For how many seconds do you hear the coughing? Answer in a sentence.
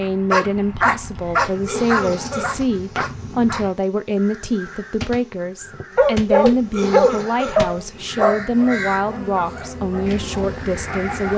The coughing can be heard for 2 seconds in total.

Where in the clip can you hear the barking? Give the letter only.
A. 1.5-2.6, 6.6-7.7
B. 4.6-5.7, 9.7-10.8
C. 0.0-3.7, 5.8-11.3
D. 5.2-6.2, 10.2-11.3
C.